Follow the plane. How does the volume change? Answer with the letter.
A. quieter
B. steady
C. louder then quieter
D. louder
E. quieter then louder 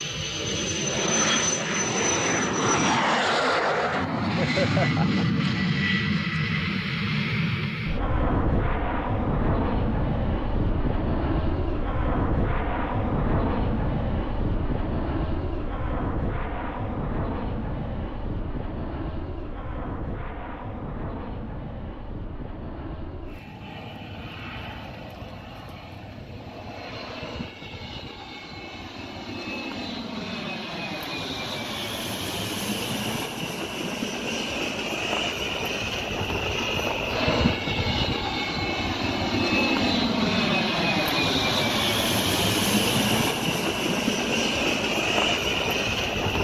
E.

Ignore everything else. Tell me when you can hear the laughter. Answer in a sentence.
You can hear the laughter from 4.3 to 5.2 s.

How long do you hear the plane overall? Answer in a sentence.
You can hear the plane for 46 seconds altogether.